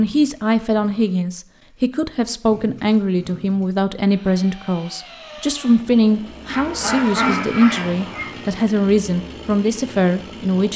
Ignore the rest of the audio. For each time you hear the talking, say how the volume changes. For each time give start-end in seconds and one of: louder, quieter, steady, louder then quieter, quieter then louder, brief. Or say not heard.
0.0-10.7 steady.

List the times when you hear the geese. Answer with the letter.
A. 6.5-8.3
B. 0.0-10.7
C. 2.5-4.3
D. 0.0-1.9
A.